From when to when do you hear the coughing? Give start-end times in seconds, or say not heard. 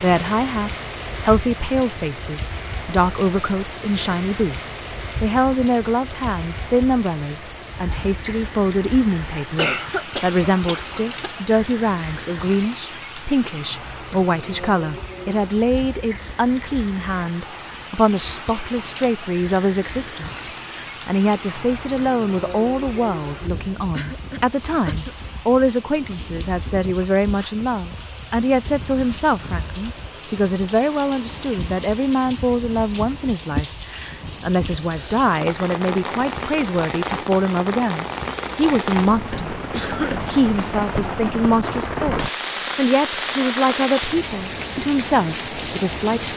9.6-11.3, 23.9-25.1, 39.7-40.2.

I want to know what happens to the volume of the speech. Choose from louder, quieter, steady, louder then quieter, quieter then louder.
steady.